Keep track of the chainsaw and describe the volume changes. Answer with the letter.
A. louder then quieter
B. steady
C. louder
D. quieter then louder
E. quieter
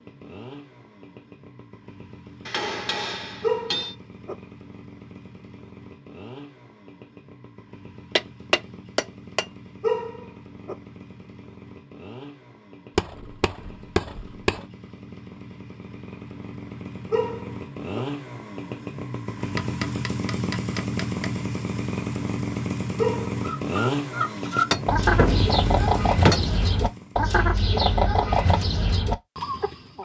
C.